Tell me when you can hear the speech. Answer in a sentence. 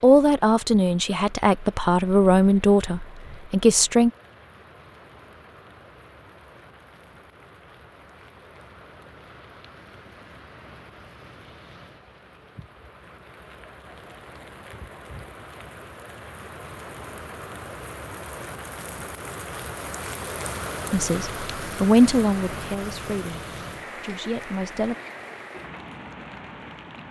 You can hear the speech from 0.0 to 4.1 s and from 20.9 to 24.9 s.